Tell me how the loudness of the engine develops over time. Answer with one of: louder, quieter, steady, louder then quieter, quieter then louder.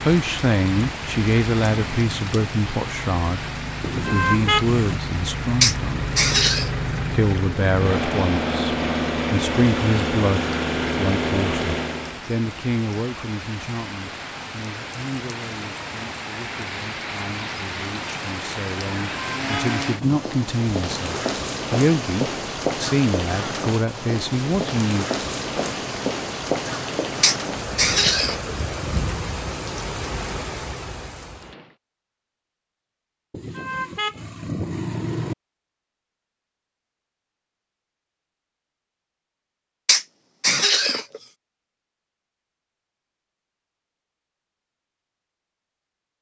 louder.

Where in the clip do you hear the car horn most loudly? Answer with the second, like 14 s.
4 s.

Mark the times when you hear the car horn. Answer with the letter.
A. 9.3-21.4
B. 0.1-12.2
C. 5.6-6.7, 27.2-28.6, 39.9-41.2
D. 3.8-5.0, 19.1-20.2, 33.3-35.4
D.